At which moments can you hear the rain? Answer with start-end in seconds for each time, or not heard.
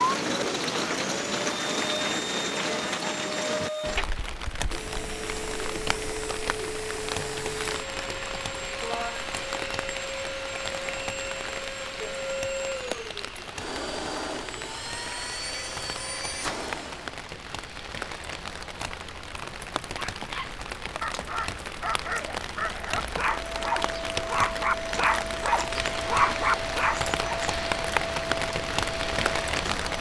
0.0-29.9.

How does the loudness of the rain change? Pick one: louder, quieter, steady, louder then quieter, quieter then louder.
quieter then louder.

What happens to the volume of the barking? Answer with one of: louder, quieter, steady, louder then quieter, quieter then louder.
louder.